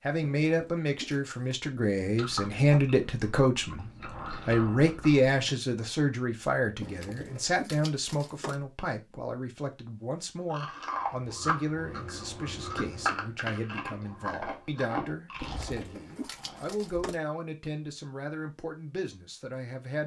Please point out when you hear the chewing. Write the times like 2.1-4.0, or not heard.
2.0-5.3, 10.5-17.1.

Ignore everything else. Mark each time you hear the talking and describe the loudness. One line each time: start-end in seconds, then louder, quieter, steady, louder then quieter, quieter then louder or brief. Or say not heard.
0.0-20.0 quieter.